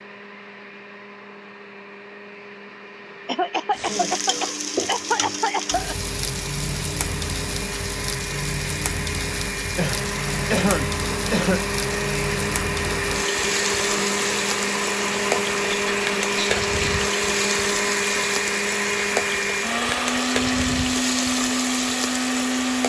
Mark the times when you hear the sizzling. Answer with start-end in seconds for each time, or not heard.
3.7-22.8.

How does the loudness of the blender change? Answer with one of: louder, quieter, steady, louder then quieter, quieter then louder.
louder.